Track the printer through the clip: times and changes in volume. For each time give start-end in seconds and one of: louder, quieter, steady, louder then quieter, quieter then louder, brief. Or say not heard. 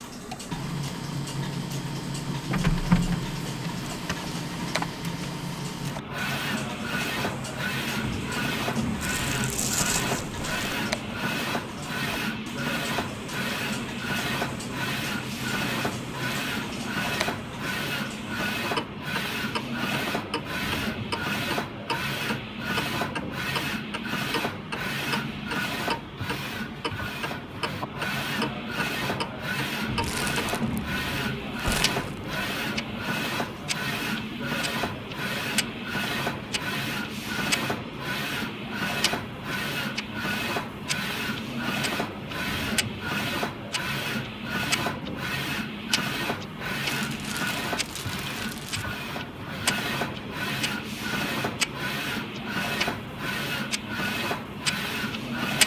0.0-55.6 steady.